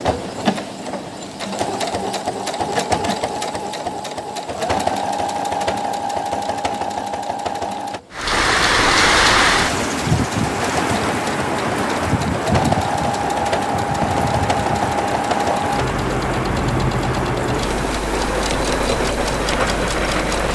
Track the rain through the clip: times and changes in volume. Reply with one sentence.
The rain can be heard from 8.1 to 20.4 s, getting quieter.